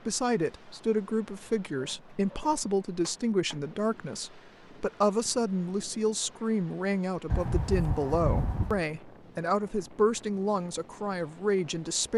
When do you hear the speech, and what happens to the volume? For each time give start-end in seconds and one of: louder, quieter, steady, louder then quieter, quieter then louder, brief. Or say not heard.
0.1-12.1 steady.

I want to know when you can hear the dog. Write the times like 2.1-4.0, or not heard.
1.7-3.6, 7.2-8.8.